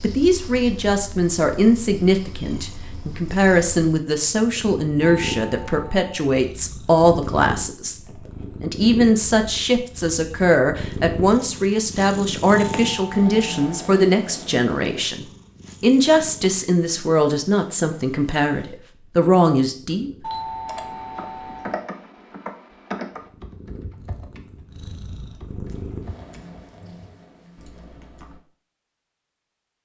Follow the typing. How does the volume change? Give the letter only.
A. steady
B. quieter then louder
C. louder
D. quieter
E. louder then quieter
D.